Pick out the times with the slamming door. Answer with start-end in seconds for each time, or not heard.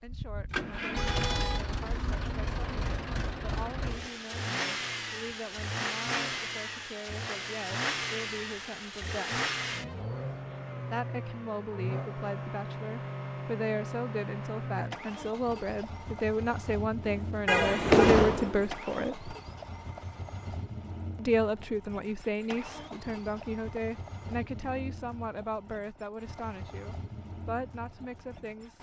17.1-18.7.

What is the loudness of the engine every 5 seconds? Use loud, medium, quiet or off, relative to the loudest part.
loud, loud, loud, medium, medium, quiet.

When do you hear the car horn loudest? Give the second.
18 s.